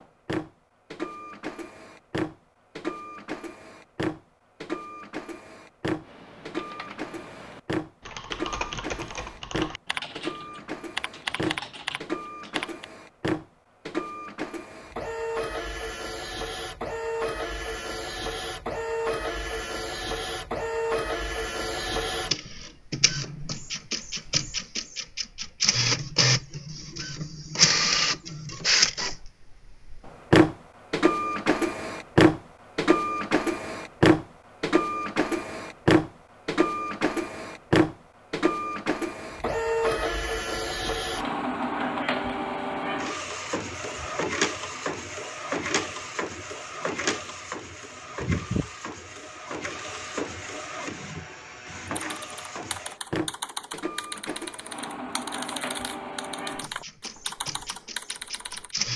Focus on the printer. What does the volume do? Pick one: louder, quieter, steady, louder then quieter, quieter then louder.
louder then quieter.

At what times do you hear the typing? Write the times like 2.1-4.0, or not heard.
6.0-12.8, 51.9-58.8.